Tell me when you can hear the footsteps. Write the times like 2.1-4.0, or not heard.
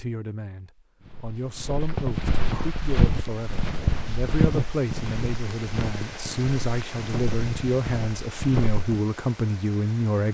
1.0-9.0.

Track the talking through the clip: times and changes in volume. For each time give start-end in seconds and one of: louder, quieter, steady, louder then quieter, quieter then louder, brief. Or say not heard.
0.0-10.2 louder.